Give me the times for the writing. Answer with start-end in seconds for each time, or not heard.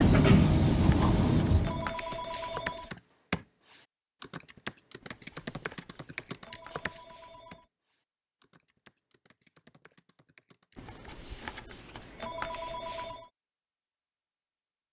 0.0-1.9.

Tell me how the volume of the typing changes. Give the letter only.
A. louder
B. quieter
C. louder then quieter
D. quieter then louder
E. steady
B.